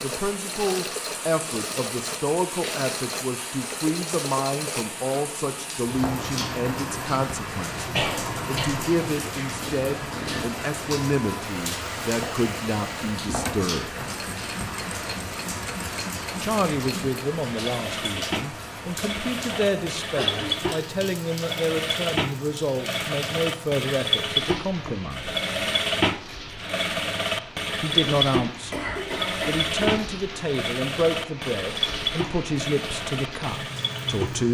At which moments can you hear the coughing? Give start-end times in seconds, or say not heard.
7.9-8.8, 20.1-20.8, 28.6-29.7.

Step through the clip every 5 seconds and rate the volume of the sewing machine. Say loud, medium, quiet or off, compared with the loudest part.
medium, medium, medium, medium, loud, loud, medium.